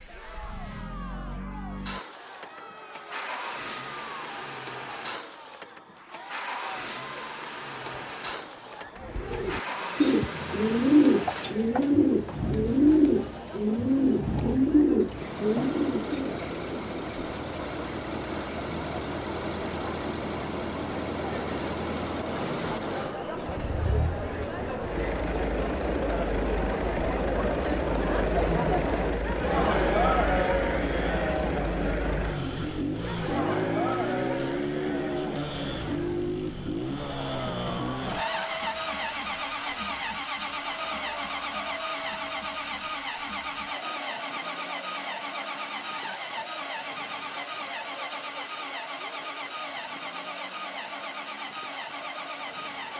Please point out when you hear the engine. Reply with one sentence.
The engine can be heard from 0.0 to 52.9 s.